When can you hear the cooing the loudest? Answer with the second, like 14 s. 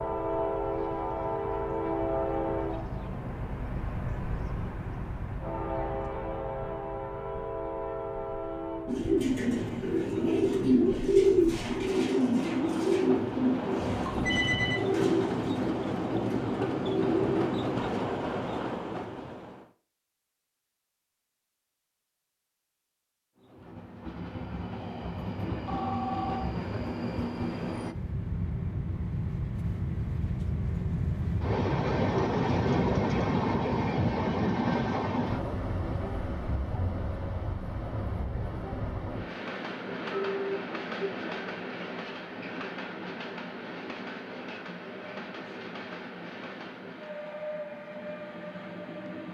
11 s.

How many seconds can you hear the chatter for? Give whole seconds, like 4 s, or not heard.
not heard.